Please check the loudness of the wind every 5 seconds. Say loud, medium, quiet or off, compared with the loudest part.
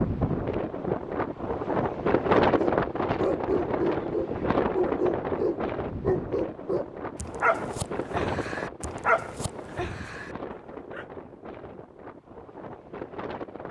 loud, medium, quiet.